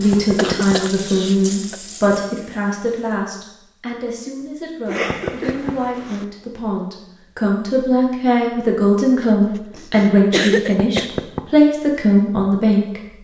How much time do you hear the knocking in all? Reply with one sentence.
The knocking can be heard for 2 seconds in total.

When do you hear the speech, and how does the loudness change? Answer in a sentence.
You can hear the speech from 0.0 to 13.0 s, getting quieter then louder.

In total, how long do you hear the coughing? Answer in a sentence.
The coughing can be heard for 5 seconds in total.